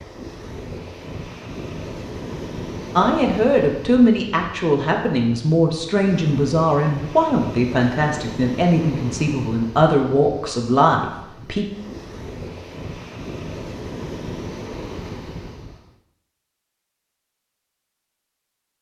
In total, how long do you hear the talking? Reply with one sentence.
The talking can be heard for 9 seconds in total.